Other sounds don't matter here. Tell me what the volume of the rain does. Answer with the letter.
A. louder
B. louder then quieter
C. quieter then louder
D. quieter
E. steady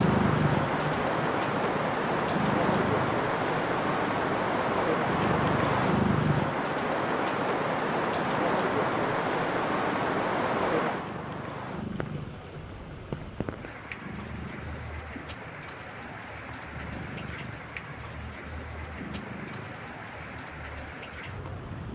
D.